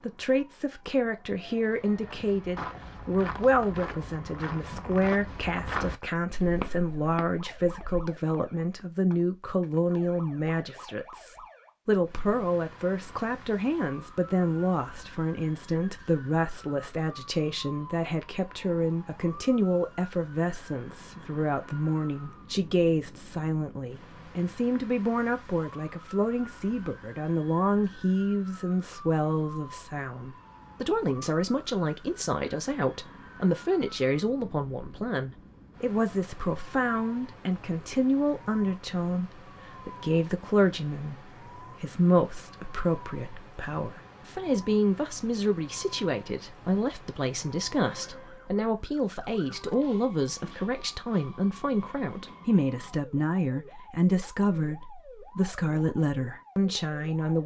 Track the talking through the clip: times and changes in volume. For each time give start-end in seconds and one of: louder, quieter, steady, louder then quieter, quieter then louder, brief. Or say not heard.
0.0-57.4 steady.